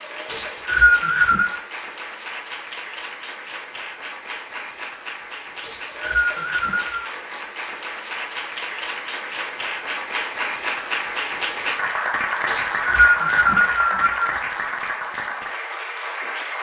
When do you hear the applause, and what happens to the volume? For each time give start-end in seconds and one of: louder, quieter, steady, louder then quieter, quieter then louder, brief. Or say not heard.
0.0-16.5 louder.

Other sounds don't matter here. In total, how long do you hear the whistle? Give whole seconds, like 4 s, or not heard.
5 s.